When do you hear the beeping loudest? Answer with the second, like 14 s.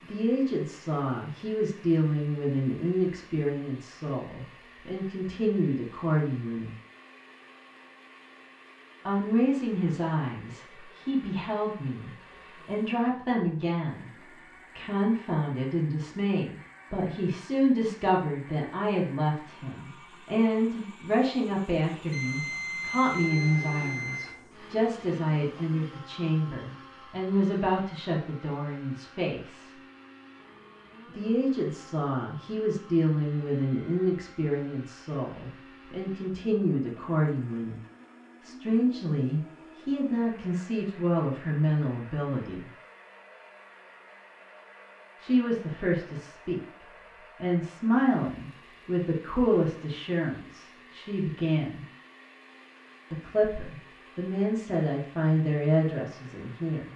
23 s.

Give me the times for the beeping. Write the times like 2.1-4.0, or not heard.
22.1-24.6.